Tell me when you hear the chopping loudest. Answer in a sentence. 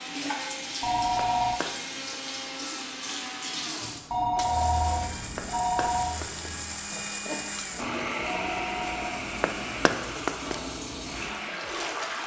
The loudest moment of the chopping is at 10 seconds.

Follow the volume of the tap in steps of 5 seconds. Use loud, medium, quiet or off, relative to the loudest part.
loud, medium, loud.